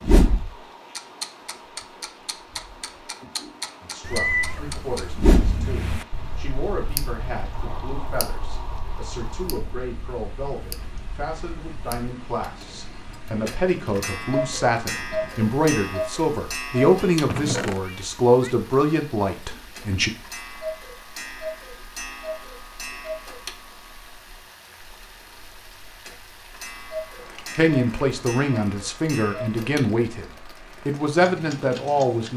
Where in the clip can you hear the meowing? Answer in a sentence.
You can hear the meowing from 4.0 to 6.0 s and from 17.0 to 18.5 s.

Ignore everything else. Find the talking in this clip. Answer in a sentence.
The talking can be heard from 3.8 to 20.1 s and from 27.6 to 32.3 s.